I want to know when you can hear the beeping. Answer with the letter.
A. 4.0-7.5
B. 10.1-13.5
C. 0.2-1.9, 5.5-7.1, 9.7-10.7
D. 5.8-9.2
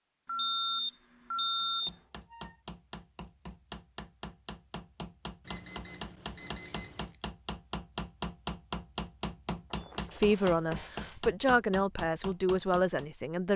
C.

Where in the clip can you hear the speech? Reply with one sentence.
The speech can be heard from 10.1 to 13.5 s.